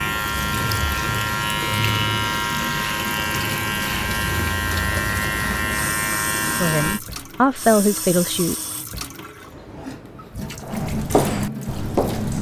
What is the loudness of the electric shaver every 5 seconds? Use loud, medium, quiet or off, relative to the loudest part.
loud, loud, off.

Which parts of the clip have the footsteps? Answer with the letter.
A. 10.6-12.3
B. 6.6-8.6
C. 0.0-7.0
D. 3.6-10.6
A.